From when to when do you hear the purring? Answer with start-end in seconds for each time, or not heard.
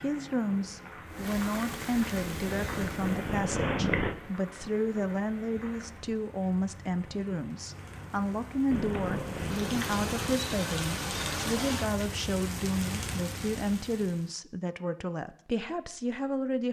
2.1-4.2, 8.7-10.3.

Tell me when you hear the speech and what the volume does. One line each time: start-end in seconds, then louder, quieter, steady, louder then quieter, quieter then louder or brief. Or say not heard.
0.0-16.6 steady.